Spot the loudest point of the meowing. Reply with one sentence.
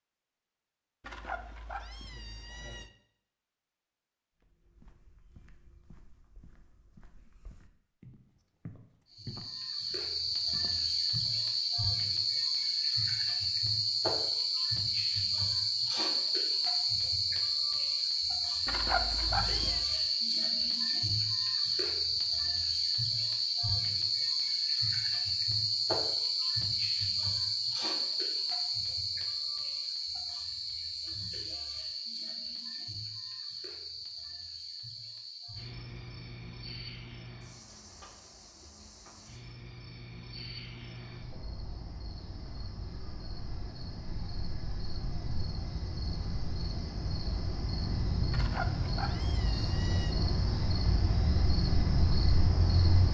The volume of the meowing peaks at 19 seconds.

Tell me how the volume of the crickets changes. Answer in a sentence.
The volume of the crickets goes down, then up.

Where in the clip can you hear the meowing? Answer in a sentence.
You can hear the meowing from 1.0 to 2.9 s, from 18.6 to 19.9 s and from 48.3 to 50.1 s.